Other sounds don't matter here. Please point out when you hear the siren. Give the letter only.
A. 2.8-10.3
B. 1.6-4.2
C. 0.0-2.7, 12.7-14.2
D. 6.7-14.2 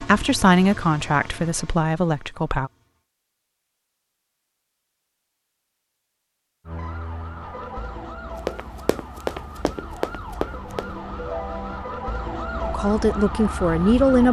D.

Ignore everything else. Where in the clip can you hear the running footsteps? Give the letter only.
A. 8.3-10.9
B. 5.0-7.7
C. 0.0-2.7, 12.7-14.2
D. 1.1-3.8
A.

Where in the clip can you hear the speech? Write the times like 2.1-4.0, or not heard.
0.0-2.7, 12.7-14.2.